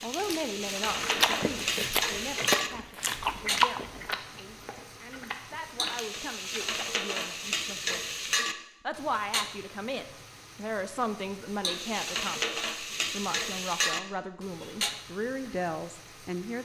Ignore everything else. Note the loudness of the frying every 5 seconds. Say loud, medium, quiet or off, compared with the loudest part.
loud, loud, loud, quiet.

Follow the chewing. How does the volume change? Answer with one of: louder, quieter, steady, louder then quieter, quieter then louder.
quieter.